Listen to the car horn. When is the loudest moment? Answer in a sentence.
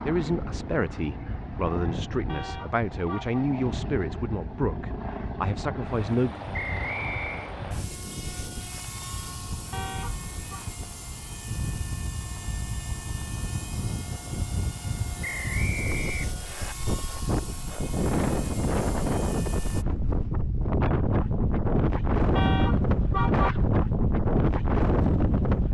The volume of the car horn peaks at 23 seconds.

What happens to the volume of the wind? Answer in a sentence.
The loudness of the wind goes up.